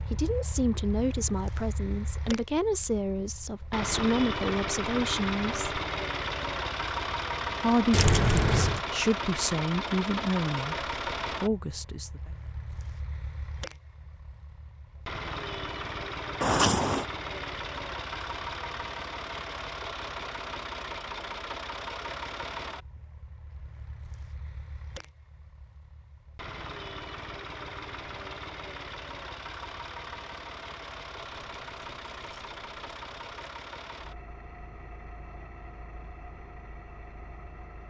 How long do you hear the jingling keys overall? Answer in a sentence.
The jingling keys can be heard for 4 seconds in total.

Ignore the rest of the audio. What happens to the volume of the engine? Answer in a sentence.
The loudness of the engine goes down.